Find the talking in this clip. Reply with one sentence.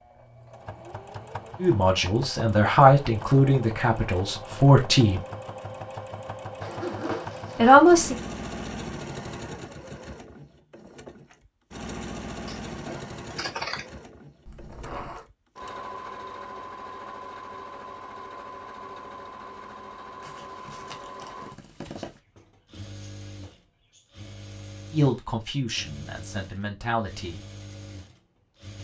You can hear the talking from 1.6 to 5.2 s, from 7.5 to 8.2 s and from 24.9 to 27.4 s.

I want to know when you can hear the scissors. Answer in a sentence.
You can hear the scissors from 12.4 to 13.8 s.